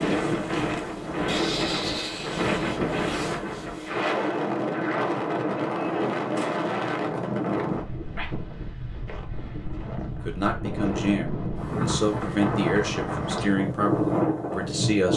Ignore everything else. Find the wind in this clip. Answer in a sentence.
You can hear the wind from 0.0 to 15.1 s.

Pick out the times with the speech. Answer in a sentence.
The speech can be heard from 10.2 to 15.1 s.